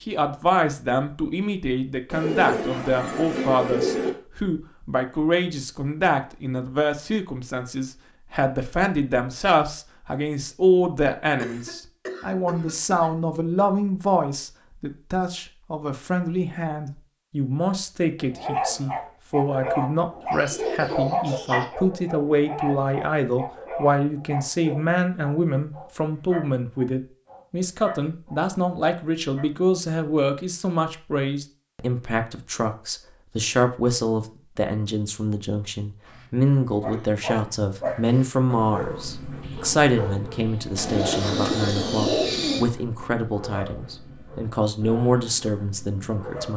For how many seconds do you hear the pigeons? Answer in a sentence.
The pigeons can be heard for 5 seconds in total.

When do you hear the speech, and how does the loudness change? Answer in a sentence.
You can hear the speech from 0.0 to 46.5 s, at a steady volume.